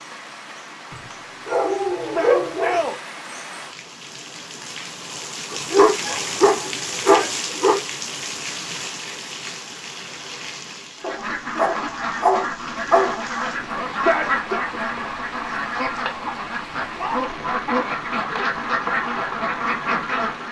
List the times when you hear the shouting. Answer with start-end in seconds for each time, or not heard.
2.0-3.0, 7.0-7.5, 13.9-14.6.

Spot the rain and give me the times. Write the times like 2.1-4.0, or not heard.
0.0-20.4.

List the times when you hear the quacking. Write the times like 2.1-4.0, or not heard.
11.0-20.4.